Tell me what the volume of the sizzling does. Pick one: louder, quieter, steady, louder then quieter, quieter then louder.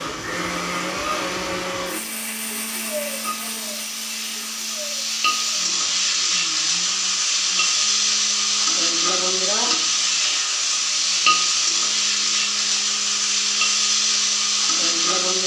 louder.